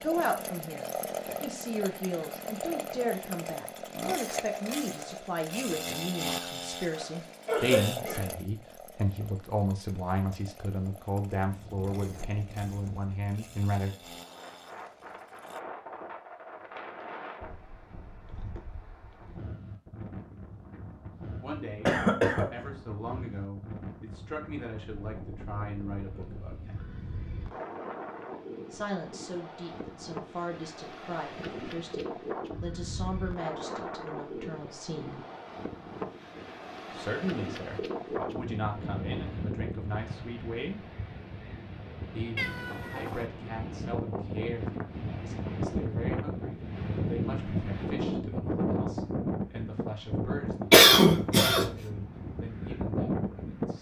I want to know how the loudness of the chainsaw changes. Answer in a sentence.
The volume of the chainsaw goes down.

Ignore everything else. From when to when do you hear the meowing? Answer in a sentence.
You can hear the meowing from 42.4 to 43.3 s.